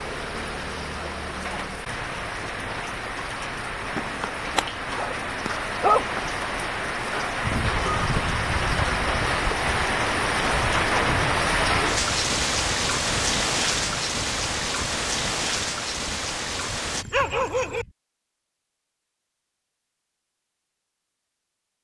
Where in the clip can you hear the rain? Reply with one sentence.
The rain can be heard from 0.0 to 17.1 s.